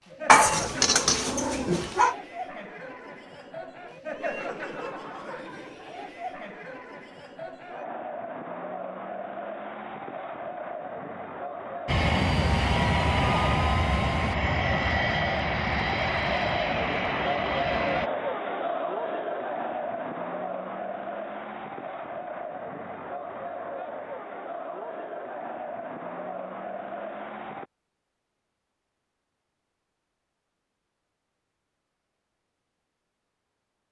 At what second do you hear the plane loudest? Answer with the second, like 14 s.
13 s.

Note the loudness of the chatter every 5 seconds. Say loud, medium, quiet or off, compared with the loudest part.
medium, medium, medium, loud, medium, medium, off.